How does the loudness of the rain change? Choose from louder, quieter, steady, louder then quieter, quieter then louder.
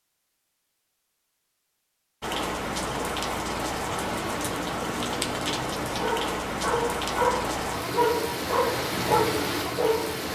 steady.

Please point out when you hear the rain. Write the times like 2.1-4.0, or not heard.
2.2-10.3.